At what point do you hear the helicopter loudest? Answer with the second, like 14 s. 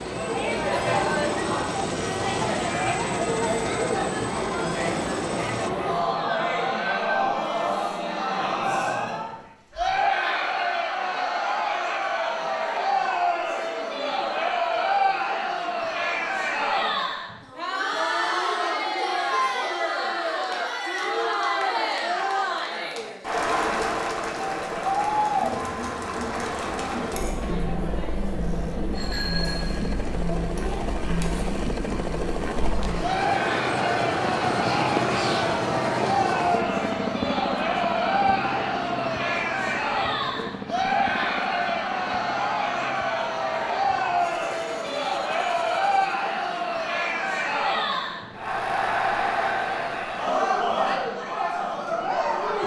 35 s.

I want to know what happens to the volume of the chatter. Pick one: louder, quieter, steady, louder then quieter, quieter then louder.
steady.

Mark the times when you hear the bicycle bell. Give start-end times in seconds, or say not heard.
28.4-30.0.